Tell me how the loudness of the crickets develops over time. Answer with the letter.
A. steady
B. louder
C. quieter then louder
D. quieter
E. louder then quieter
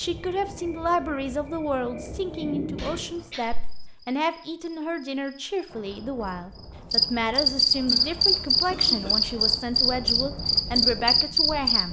B.